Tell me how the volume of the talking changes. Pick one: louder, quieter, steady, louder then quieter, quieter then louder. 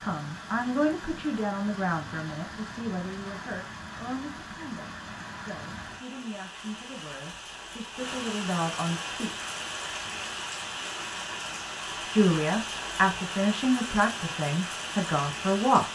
quieter then louder.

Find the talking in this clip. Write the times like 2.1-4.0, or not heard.
0.0-9.3, 12.1-15.8.